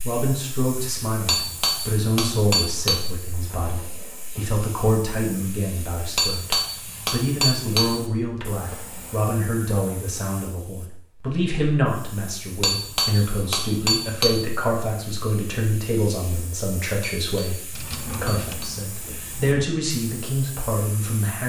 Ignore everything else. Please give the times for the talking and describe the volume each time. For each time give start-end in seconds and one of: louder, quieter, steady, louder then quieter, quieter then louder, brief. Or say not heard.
0.0-21.4 steady.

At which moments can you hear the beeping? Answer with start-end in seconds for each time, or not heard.
not heard.